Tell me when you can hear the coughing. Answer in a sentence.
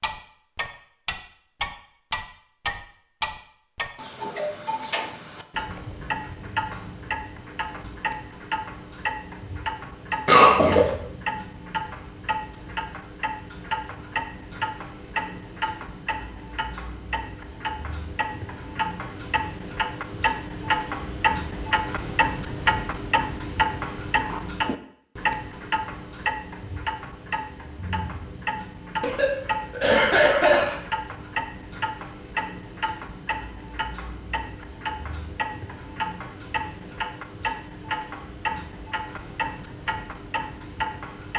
You can hear the coughing from 10.2 to 10.8 s and from 29.0 to 30.8 s.